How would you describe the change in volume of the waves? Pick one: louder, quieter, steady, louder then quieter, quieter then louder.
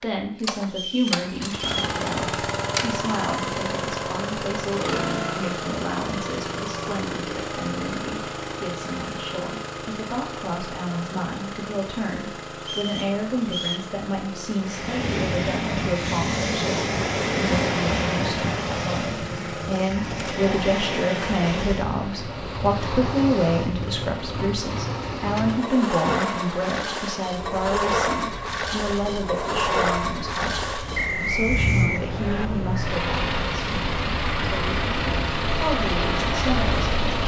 quieter then louder.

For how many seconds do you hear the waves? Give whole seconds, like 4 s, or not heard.
23 s.